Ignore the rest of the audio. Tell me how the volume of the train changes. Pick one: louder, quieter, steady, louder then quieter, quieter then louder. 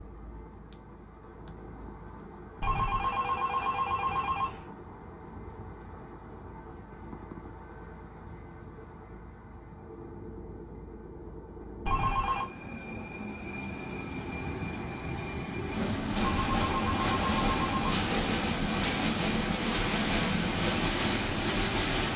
louder.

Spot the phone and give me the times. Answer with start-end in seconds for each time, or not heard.
2.6-4.7, 11.8-12.4, 16.1-17.9.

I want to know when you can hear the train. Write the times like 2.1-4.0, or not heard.
0.0-22.1.